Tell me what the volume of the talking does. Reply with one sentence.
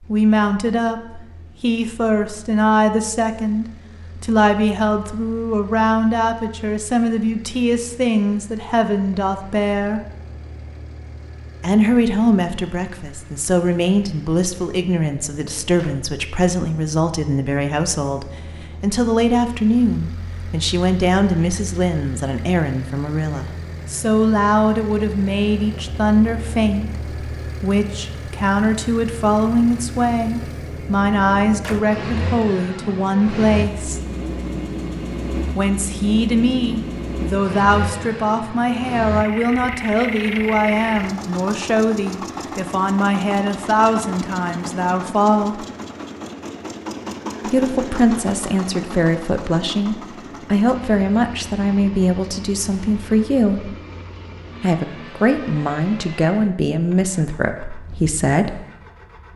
The loudness of the talking stays about the same.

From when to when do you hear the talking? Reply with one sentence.
You can hear the talking from 0.1 to 10.0 s, from 11.6 to 34.0 s, from 35.5 to 45.6 s, from 47.5 to 53.8 s and from 54.6 to 58.6 s.